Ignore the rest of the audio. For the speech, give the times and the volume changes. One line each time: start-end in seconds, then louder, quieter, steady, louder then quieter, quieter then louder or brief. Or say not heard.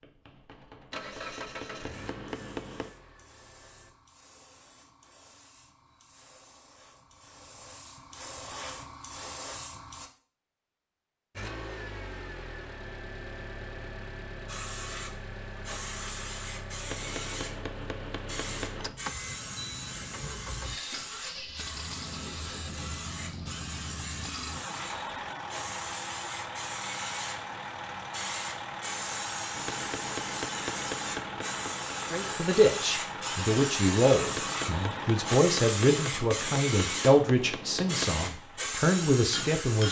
32.1-39.8 steady.